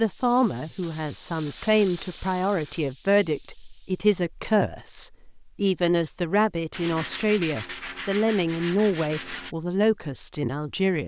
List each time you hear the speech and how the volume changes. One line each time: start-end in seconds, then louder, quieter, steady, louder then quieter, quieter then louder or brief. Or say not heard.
0.0-11.0 steady.